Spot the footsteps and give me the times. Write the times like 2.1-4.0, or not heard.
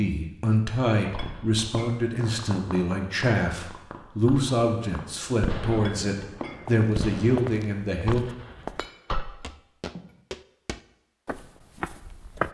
6.7-12.5.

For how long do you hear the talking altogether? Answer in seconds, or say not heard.
8 s.